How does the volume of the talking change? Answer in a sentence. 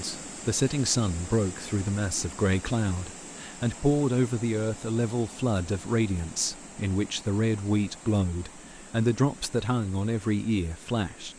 The loudness of the talking stays about the same.